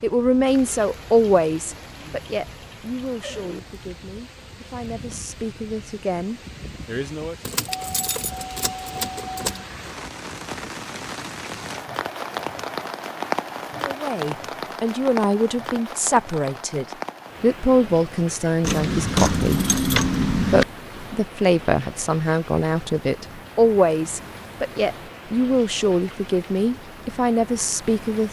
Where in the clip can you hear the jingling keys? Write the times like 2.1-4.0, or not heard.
7.5-9.7, 18.6-20.6.